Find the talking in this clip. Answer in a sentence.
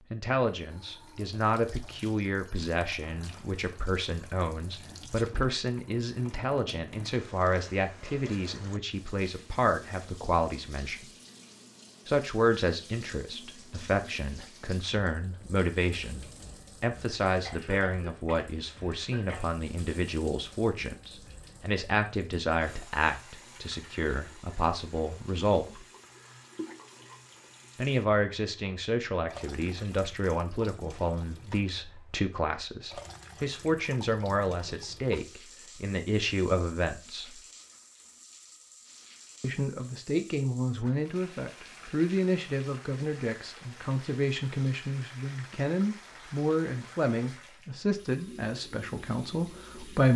The talking can be heard from 0.1 to 11.1 s, from 12.1 to 25.8 s, from 27.8 to 37.4 s and from 39.4 to 50.1 s.